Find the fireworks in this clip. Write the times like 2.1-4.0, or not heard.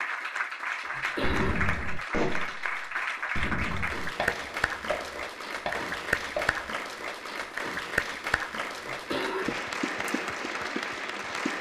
1.2-6.8.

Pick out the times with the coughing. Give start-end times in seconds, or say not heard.
0.8-1.7, 8.8-9.7.